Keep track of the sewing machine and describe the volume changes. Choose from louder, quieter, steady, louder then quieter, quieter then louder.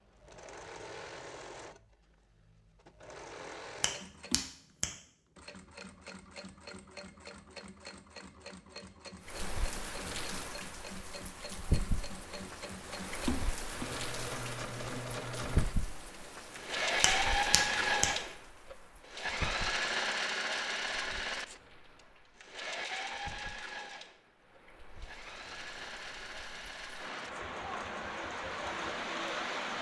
louder then quieter.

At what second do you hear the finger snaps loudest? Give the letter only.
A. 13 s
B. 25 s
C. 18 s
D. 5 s
C.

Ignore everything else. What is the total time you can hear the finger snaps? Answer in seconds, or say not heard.
2 s.